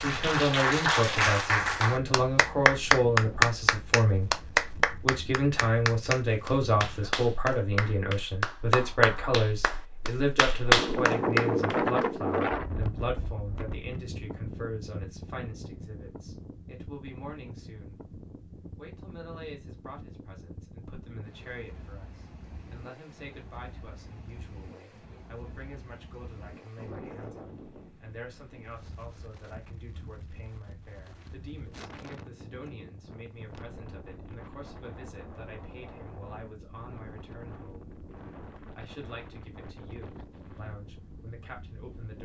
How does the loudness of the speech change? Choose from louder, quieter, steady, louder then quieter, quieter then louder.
quieter.